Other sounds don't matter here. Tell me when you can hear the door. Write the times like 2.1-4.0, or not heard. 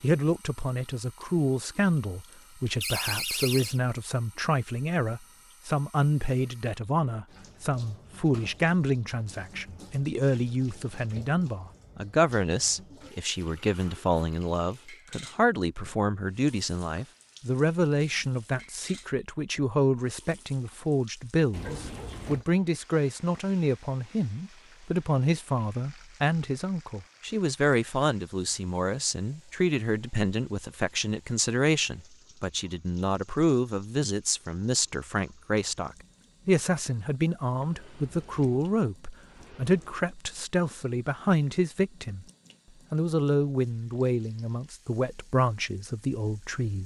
2.8-3.8, 21.5-22.4, 37.5-40.0.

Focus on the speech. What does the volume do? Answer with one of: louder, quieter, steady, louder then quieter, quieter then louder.
steady.